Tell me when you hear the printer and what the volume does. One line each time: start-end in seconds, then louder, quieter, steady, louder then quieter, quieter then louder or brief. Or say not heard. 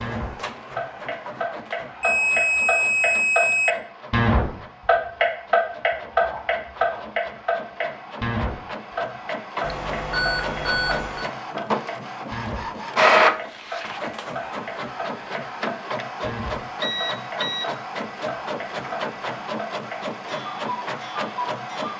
0.0-21.9 louder then quieter.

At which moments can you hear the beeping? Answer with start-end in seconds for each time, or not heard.
2.0-3.8, 9.6-11.3, 16.8-17.6.